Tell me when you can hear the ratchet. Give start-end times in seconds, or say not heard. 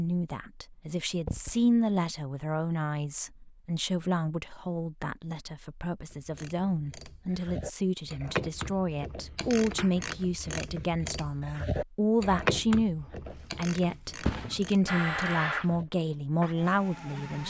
6.1-15.8.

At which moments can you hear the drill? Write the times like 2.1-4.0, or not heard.
14.8-17.4.